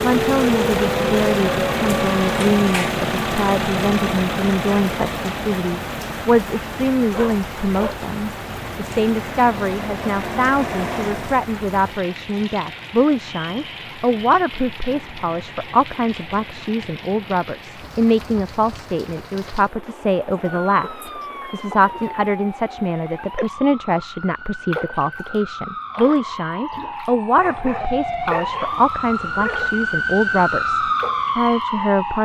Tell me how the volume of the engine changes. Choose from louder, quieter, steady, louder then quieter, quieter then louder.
quieter then louder.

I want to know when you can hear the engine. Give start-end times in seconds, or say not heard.
0.0-11.5.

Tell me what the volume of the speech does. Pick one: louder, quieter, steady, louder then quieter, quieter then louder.
steady.